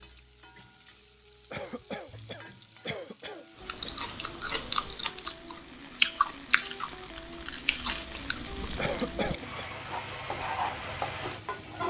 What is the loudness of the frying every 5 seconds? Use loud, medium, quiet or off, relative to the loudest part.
quiet, medium, loud.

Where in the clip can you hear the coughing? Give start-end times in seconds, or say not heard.
1.5-4.0, 8.8-9.7.